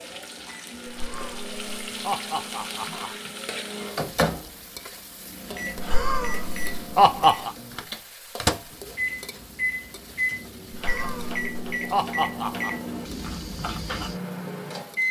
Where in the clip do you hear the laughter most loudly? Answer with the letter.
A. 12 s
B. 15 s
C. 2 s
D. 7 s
D.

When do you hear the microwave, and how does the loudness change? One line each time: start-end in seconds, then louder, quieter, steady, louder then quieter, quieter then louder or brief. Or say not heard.
0.0-15.0 louder.